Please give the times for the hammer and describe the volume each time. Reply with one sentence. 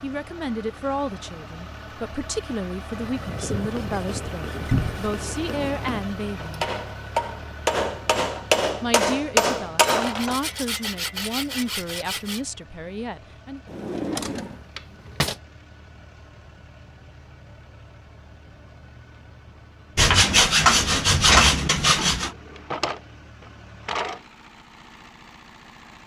The hammer can be heard from 3.4 to 10.3 s, getting louder.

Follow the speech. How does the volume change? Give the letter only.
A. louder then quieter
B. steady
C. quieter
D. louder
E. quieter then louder
B.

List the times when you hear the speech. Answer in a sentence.
You can hear the speech from 0.0 to 6.7 s and from 8.8 to 13.6 s.